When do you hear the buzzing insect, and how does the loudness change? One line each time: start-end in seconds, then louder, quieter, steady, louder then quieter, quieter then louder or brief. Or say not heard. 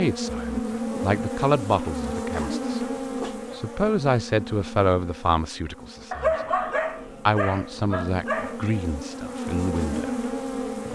0.0-10.9 quieter then louder.